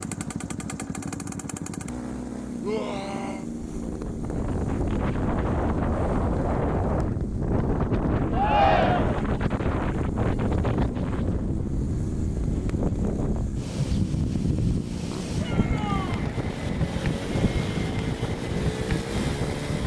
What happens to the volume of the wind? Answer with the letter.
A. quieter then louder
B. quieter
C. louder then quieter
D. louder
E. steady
E.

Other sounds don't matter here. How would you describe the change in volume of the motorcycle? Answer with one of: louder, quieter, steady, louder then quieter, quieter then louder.
steady.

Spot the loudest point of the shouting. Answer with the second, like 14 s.
9 s.